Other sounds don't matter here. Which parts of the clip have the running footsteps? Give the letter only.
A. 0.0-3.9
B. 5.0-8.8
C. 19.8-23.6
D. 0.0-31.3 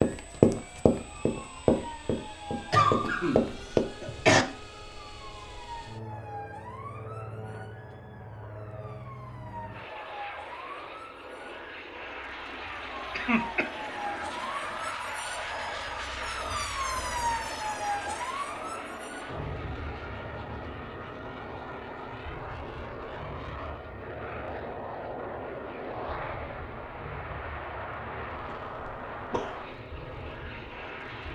A.